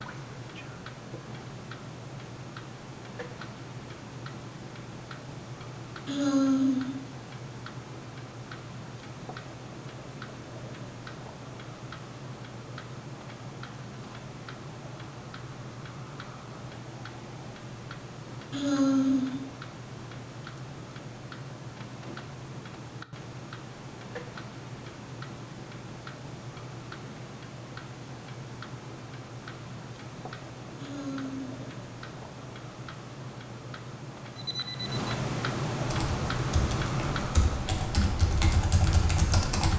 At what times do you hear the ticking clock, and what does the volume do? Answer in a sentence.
The ticking clock can be heard from 0.0 to 39.7 s, getting louder.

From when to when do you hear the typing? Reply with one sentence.
You can hear the typing from 35.9 to 39.7 s.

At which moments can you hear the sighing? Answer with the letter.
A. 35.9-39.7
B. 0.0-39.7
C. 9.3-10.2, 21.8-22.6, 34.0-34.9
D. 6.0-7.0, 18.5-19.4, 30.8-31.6
D.